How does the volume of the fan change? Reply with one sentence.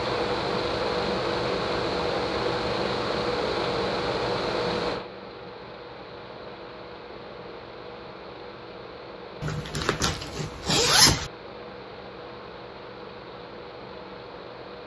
The volume of the fan goes down.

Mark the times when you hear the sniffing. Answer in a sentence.
You can't hear the sniffing here.